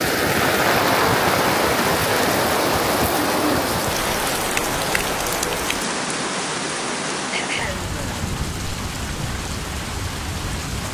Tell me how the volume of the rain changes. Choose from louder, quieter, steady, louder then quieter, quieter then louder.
quieter.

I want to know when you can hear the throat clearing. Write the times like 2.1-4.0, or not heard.
7.3-8.2.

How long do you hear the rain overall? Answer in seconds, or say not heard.
11 s.